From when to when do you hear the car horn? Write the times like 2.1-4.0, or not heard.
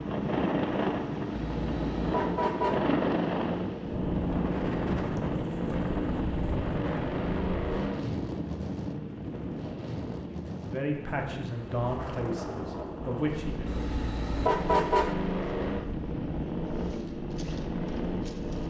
1.5-2.9, 13.7-15.2.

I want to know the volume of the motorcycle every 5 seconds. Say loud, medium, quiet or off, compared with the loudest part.
loud, loud, medium, loud.